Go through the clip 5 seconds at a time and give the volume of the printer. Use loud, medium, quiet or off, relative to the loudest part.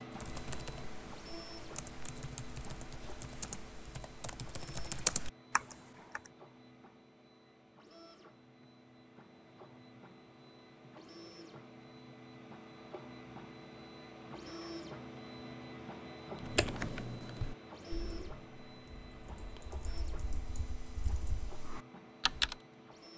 loud, medium, loud, loud, medium.